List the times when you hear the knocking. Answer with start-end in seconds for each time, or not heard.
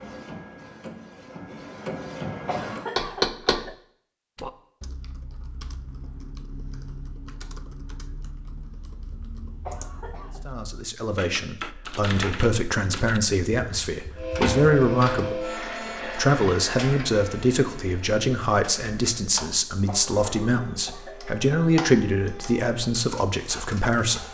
3.0-3.7.